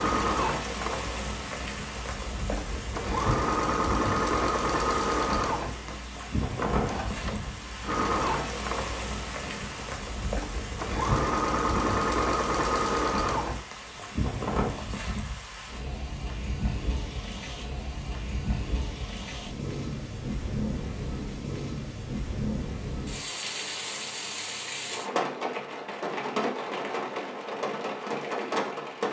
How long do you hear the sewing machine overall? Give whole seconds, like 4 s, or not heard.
14 s.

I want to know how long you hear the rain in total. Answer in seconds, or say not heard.
29 s.